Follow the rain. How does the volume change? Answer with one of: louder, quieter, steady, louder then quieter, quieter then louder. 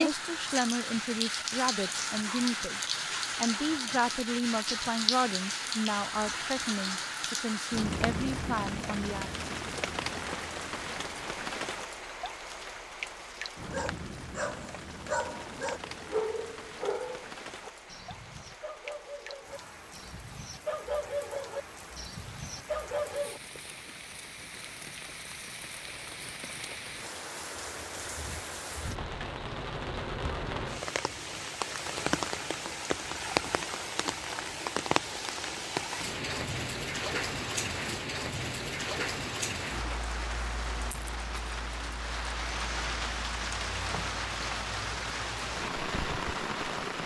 quieter then louder.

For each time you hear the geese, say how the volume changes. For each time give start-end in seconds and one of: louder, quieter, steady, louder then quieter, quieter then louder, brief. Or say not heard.
not heard.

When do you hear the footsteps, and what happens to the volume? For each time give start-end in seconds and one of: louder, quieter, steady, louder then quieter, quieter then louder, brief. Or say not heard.
not heard.